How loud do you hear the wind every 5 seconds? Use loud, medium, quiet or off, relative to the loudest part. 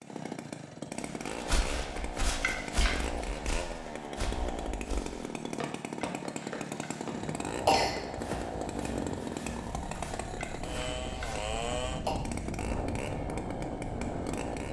off, loud, loud.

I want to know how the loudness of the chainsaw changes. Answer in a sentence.
The volume of the chainsaw stays about the same.